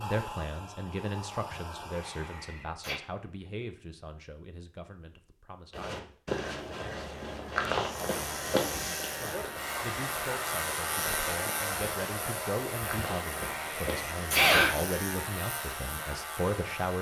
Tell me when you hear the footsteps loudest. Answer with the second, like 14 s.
8 s.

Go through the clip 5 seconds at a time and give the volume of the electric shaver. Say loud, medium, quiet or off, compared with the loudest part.
off, loud, loud, loud.